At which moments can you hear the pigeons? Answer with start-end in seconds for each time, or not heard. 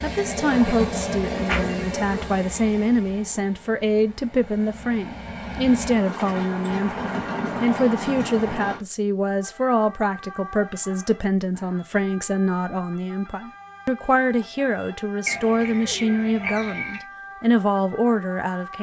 0.6-2.2, 15.2-17.1.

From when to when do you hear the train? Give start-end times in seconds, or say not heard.
0.0-8.8.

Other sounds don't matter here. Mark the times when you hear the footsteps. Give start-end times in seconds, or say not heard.
not heard.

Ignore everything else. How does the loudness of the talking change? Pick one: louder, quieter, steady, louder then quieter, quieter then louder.
steady.